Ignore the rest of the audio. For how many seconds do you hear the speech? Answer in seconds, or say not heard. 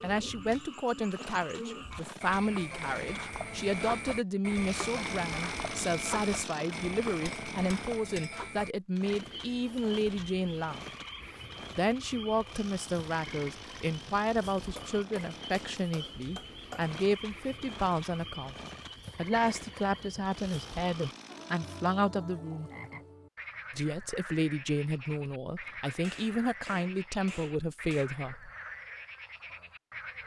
26 s.